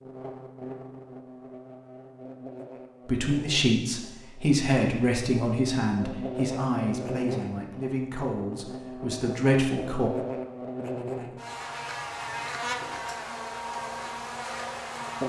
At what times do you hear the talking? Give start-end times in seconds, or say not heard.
3.0-10.1.